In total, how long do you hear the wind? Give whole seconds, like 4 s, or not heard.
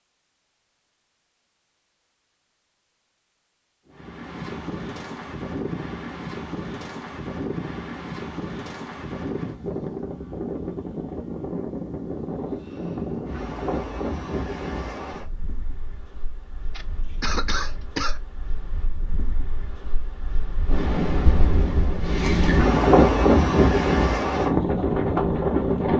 22 s.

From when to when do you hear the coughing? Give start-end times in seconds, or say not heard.
16.8-18.2.